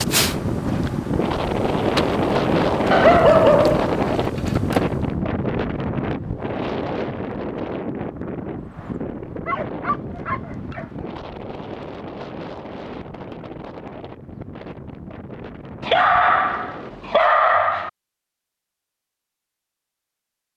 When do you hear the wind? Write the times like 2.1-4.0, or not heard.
0.0-17.1.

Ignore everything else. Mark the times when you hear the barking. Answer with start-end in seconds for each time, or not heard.
2.9-3.9, 9.4-11.1, 15.8-17.9.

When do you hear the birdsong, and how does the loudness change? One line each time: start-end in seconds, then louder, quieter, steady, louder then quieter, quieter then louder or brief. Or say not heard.
not heard.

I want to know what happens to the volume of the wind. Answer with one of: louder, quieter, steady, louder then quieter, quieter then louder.
quieter.